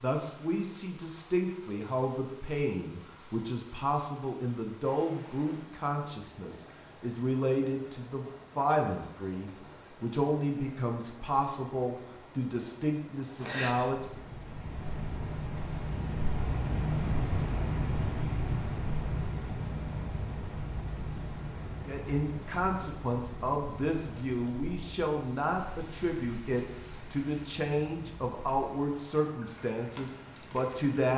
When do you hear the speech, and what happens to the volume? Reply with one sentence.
The speech can be heard from 0.0 to 14.0 s, at a steady volume; and from 21.9 to 31.1 s, at a steady volume.